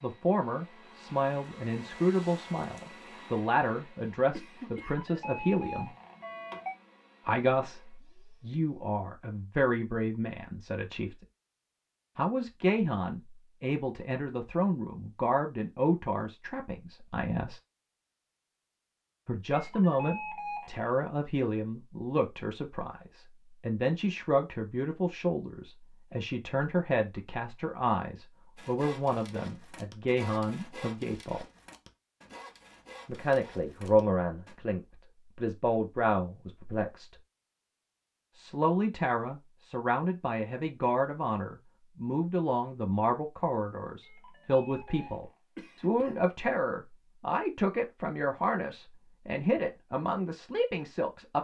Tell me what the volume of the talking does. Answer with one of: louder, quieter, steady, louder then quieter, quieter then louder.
steady.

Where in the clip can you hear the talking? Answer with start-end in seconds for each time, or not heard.
0.0-5.9, 7.2-11.2, 12.2-17.6, 19.2-31.4, 33.0-37.1, 38.4-51.3.